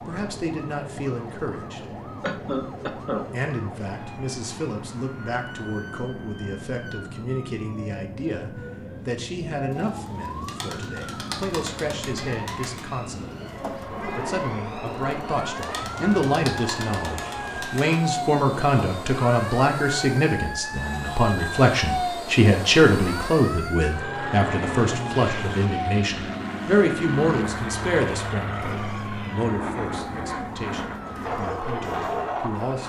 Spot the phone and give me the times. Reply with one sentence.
The phone can't be heard in this clip.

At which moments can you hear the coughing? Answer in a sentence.
You can hear the coughing from 2.2 to 3.2 s.